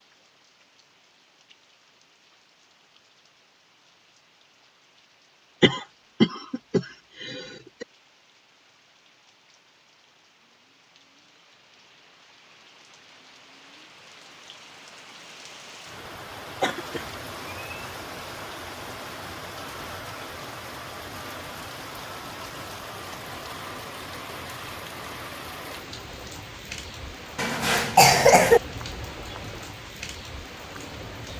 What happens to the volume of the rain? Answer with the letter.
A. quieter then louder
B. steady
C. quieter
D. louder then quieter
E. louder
E.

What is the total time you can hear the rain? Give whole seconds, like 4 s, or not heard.
31 s.